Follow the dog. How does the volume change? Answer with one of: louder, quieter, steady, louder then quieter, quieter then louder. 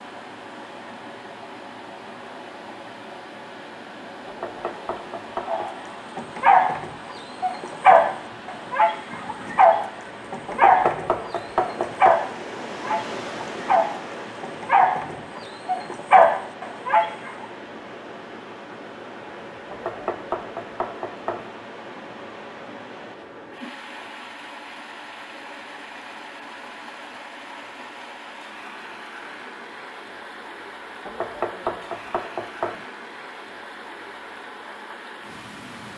quieter then louder.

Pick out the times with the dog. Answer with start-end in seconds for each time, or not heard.
5.5-17.3.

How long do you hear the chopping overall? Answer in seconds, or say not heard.
7 s.